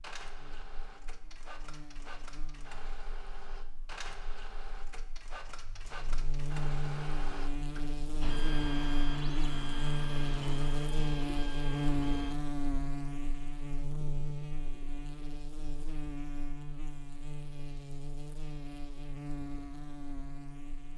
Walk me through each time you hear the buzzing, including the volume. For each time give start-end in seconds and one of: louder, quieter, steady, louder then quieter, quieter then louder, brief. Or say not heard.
0.0-20.9 louder then quieter.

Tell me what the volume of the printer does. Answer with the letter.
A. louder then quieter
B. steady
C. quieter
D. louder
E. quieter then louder
D.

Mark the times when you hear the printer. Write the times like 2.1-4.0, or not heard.
0.0-12.3.